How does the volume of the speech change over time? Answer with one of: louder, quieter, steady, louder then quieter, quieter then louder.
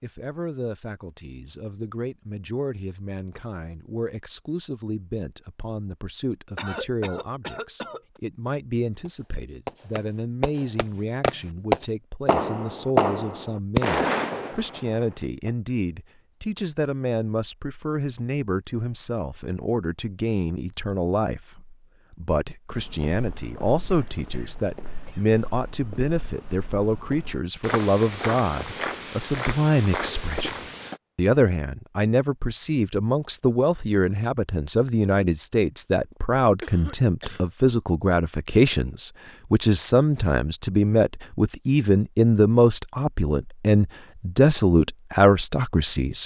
louder.